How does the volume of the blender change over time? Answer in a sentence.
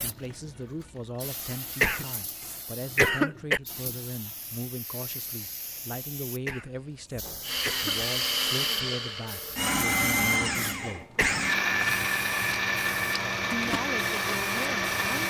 The volume of the blender stays about the same.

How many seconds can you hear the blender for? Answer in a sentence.
The blender can be heard for 8 seconds in total.